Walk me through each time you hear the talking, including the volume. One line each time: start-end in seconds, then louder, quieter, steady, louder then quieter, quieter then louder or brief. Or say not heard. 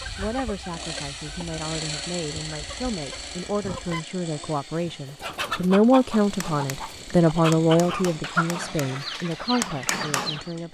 0.0-10.6 louder then quieter.